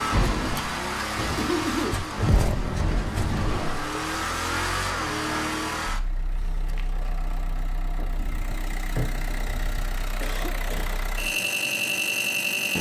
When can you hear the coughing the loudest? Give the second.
2 s.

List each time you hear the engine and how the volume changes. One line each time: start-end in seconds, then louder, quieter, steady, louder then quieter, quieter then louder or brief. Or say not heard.
0.0-12.7 quieter then louder.